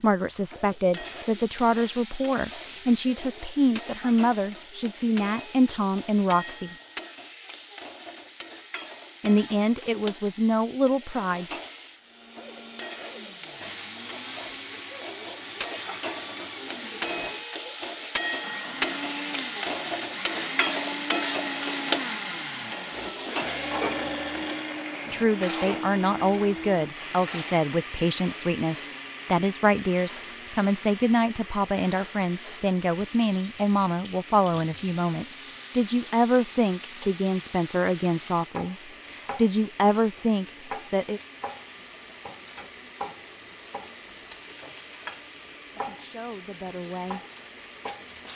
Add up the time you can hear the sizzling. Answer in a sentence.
The sizzling can be heard for 48 seconds in total.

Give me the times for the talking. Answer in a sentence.
The talking can be heard from 0.0 to 6.8 s, from 9.2 to 11.4 s, from 25.1 to 41.2 s and from 45.8 to 47.2 s.